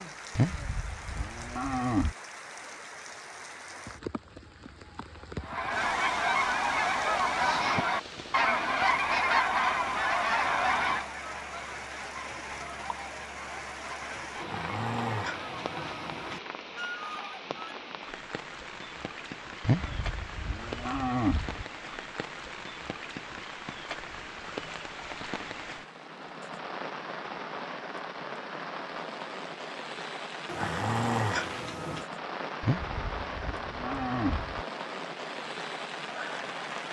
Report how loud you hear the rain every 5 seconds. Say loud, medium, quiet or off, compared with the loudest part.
medium, medium, medium, medium, loud, loud, loud, loud.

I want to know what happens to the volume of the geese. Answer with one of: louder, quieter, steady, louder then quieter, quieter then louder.
quieter.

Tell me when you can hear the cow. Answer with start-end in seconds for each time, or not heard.
0.3-2.1, 19.6-21.6, 32.6-34.6.